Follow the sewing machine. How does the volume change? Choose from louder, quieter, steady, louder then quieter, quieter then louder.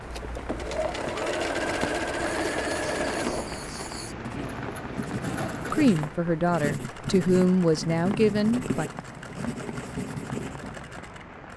quieter.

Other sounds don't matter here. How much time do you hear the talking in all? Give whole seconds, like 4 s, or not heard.
3 s.